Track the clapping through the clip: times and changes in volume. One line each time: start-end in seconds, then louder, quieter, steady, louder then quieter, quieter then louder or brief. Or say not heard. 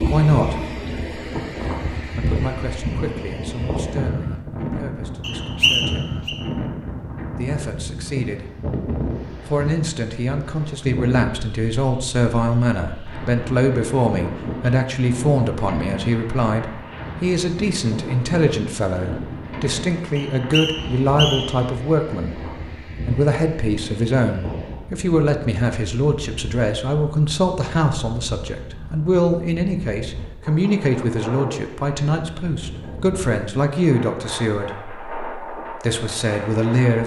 not heard.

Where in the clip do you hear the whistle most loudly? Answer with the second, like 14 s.
6 s.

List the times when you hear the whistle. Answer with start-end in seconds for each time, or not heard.
5.2-6.3, 20.1-21.6.